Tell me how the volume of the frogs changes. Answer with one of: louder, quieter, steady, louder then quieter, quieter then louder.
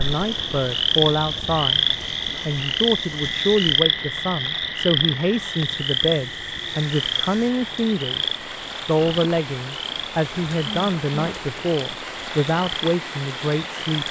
quieter.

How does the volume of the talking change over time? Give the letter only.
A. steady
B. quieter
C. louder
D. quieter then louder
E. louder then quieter
A.